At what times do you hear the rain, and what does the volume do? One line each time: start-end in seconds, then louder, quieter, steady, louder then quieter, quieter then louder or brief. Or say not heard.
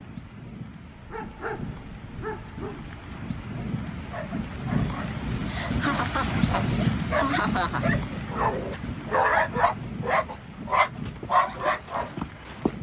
0.0-12.7 louder then quieter.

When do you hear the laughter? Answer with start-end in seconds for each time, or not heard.
5.5-8.0.